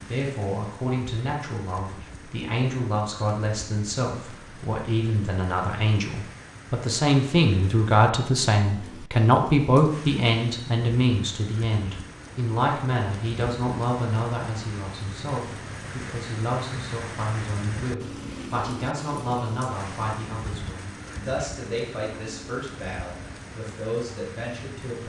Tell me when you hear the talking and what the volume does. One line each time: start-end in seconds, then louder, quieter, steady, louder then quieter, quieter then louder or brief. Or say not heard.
0.0-25.0 louder then quieter.